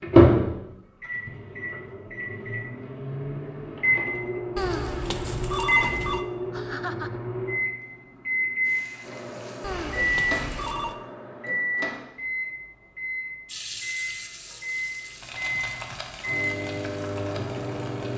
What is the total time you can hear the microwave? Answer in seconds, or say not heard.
18 s.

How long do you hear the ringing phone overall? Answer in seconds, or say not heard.
3 s.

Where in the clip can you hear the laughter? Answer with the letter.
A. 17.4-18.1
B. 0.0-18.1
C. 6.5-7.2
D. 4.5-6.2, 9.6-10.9
C.